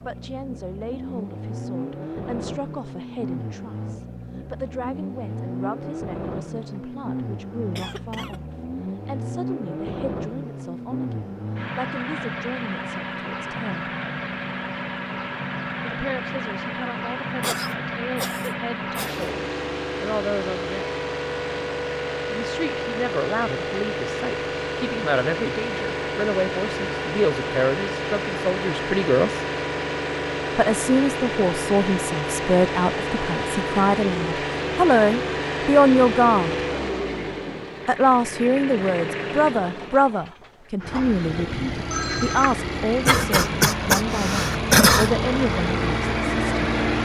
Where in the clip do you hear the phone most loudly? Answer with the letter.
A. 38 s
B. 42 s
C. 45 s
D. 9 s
B.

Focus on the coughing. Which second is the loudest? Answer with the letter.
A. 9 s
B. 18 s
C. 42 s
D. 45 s
D.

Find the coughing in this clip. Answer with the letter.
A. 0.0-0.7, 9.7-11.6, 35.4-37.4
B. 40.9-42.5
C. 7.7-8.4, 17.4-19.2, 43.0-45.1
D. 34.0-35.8
C.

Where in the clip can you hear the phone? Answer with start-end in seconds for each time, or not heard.
40.9-42.5.